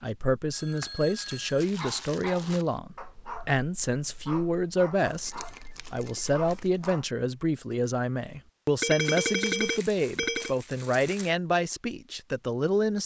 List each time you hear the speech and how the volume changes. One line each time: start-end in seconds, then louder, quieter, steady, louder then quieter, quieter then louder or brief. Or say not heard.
0.0-13.0 steady.